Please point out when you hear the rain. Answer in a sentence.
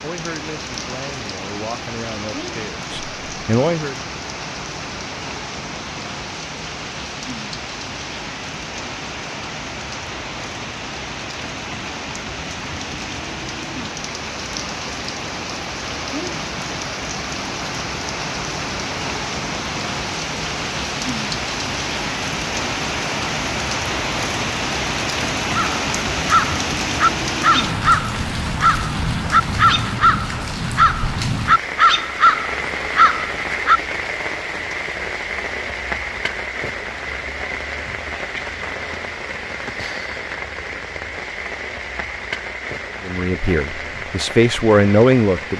The rain can be heard from 0.0 to 45.5 s.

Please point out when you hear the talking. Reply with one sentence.
You can hear the talking from 0.0 to 4.0 s and from 43.0 to 45.5 s.